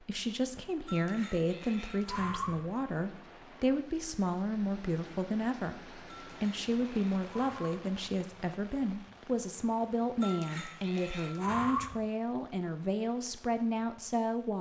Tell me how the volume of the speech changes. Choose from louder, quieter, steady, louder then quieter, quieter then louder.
steady.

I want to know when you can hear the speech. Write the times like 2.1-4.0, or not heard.
0.1-14.5.